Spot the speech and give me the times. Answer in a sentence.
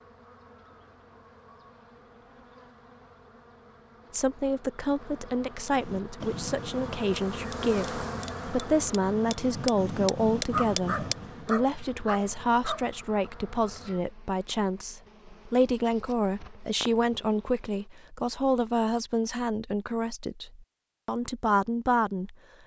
The speech can be heard from 4.1 to 22.4 s.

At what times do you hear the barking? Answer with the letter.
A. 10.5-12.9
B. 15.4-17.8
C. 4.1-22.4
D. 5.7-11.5
A.